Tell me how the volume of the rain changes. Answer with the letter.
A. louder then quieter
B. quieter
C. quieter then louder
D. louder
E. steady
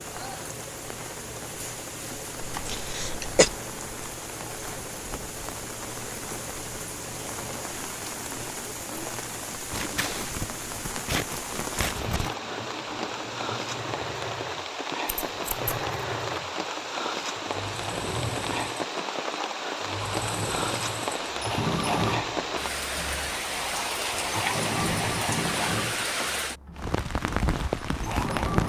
D.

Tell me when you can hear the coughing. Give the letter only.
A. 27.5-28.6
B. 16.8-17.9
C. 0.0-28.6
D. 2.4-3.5
D.